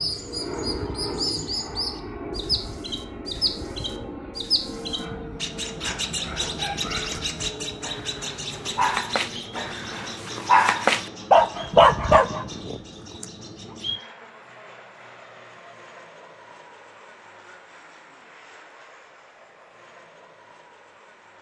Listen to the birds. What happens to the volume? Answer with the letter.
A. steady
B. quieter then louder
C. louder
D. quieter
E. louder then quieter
D.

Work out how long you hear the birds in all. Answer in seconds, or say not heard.
14 s.